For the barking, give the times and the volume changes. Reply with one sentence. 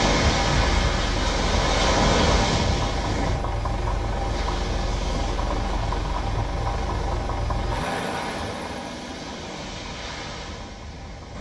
The barking can't be heard in this clip.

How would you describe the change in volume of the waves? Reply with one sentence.
The volume of the waves goes down.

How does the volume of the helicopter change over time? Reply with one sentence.
The volume of the helicopter goes down.